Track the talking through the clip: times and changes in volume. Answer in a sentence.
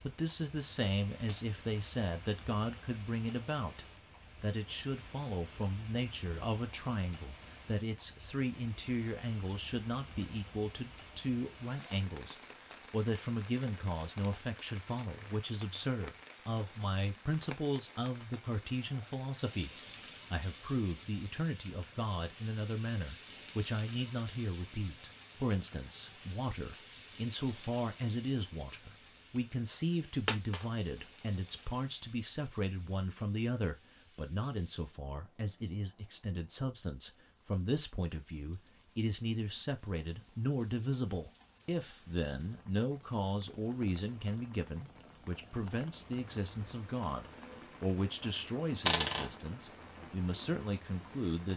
The talking can be heard from 0.0 to 51.5 s, at a steady volume.